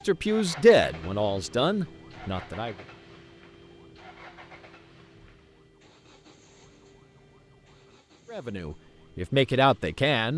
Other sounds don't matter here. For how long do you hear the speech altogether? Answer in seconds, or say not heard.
5 s.